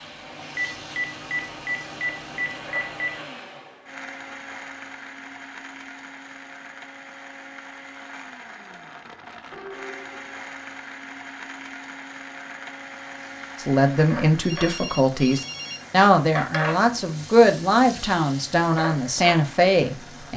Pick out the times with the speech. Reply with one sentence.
The speech can be heard from 13.6 to 20.3 s.